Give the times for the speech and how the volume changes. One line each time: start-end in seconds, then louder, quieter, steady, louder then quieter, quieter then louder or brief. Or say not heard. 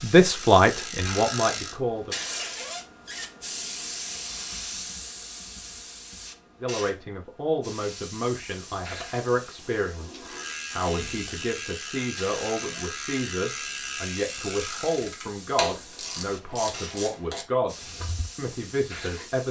0.0-2.1 brief
6.6-19.4 steady.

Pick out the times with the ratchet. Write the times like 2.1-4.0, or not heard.
0.2-1.8, 10.2-18.3.